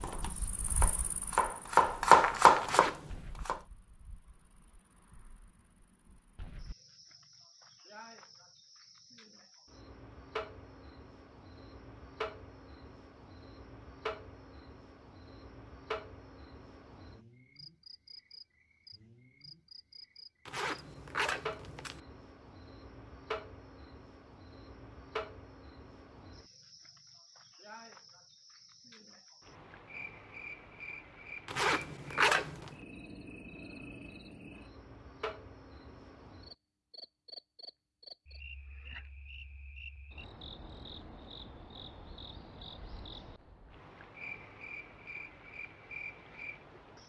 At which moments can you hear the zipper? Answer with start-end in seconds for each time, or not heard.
2.6-3.2, 20.4-22.0, 31.4-32.8.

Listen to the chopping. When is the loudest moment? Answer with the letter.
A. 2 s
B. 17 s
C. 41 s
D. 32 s
A.